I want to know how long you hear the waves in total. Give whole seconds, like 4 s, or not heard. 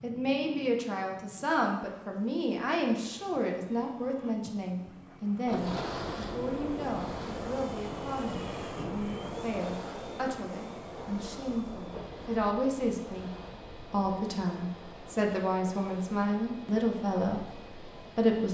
13 s.